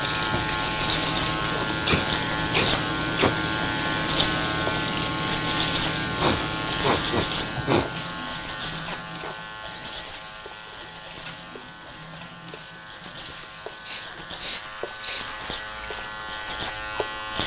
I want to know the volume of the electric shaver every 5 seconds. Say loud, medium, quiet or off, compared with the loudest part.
loud, loud, quiet, medium.